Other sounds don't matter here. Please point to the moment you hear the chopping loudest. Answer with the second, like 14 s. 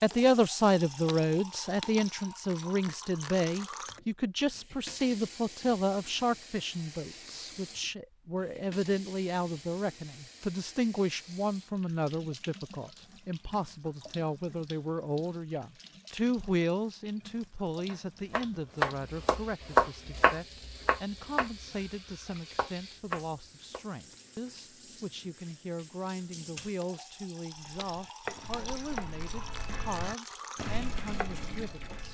20 s.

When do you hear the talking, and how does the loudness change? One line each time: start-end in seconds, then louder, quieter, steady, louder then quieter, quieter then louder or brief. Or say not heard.
0.0-32.0 quieter.